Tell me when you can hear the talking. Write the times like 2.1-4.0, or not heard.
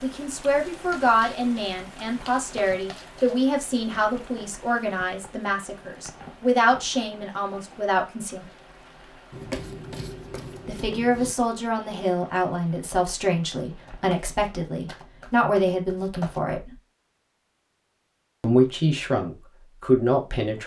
0.0-8.4, 10.7-16.8, 18.4-20.6.